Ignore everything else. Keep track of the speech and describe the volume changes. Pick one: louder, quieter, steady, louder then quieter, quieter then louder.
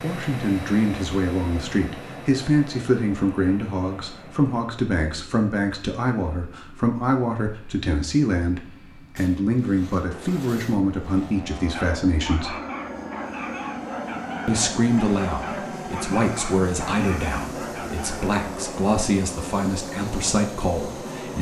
steady.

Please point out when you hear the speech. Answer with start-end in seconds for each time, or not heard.
0.0-12.6, 14.4-21.3.